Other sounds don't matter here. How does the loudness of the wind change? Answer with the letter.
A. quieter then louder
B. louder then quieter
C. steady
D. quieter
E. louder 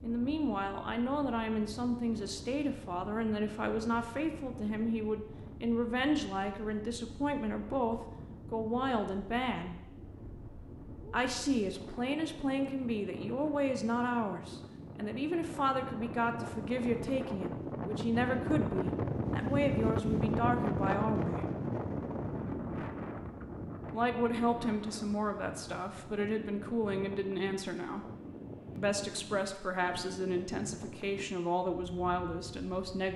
B.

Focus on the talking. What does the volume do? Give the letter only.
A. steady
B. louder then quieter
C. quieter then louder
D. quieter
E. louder
A.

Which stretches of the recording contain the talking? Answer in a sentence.
The talking can be heard from 0.0 to 9.8 s, from 11.1 to 21.4 s, from 23.9 to 28.1 s and from 28.8 to 33.1 s.